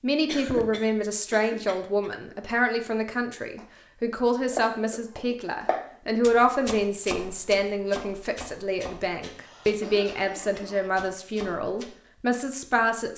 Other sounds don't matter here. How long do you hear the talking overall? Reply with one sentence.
The talking can be heard for 13 seconds in total.